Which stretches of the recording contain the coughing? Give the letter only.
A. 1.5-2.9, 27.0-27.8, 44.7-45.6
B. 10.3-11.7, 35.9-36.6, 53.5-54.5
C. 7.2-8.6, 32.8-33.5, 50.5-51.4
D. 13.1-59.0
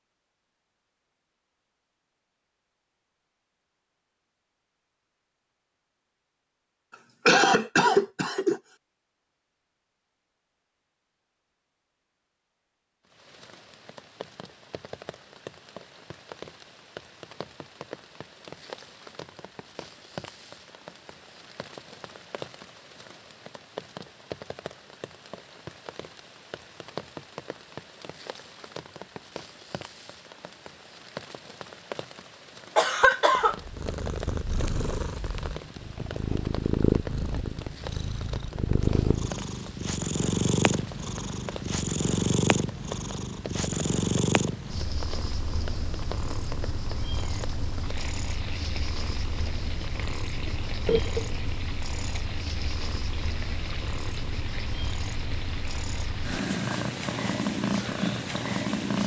C.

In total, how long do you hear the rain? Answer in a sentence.
You can hear the rain for 46 seconds altogether.